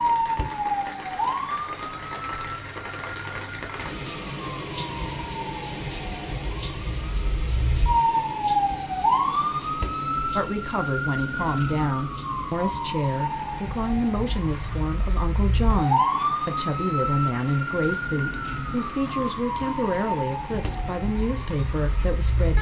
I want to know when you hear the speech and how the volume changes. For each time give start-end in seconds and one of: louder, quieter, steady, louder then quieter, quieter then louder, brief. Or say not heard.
10.3-22.5 steady.